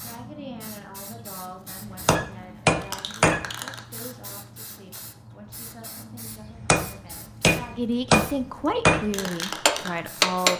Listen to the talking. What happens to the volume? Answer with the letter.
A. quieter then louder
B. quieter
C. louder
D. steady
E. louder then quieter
A.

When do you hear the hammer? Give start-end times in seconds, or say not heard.
2.0-3.5, 6.5-10.5.